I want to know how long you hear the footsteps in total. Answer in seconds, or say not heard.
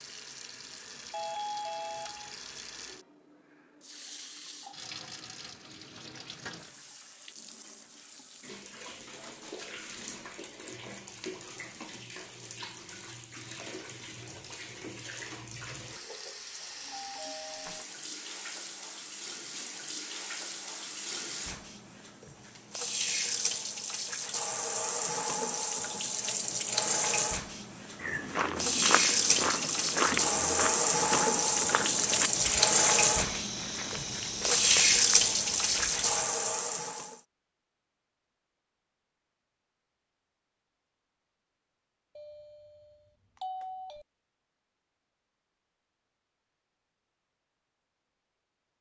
8 s.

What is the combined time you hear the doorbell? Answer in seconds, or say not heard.
4 s.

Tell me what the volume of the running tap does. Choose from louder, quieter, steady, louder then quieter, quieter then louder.
louder.